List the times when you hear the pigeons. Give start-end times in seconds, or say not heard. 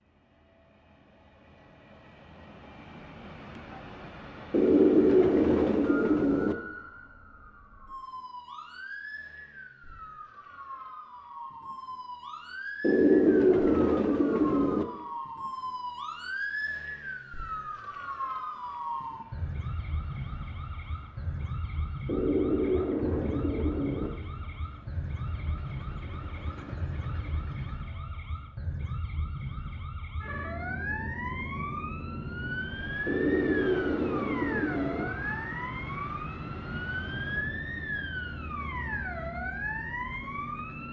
4.5-6.5, 12.8-14.8, 22.1-24.1, 33.0-35.0.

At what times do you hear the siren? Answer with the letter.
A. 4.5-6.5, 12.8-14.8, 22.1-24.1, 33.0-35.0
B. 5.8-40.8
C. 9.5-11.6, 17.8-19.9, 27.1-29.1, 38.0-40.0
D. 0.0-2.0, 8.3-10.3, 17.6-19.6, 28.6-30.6
B.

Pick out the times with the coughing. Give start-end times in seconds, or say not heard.
not heard.